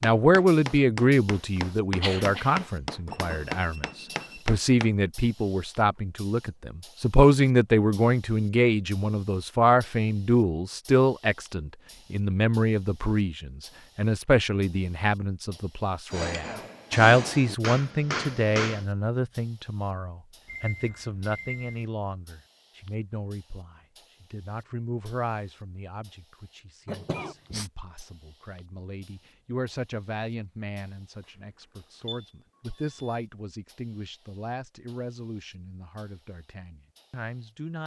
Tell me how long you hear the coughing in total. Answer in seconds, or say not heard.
3 s.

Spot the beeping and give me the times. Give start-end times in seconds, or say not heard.
3.1-4.5, 20.4-21.9, 32.0-33.2.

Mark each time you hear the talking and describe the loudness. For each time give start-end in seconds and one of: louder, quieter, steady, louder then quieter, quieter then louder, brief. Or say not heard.
0.0-37.8 quieter.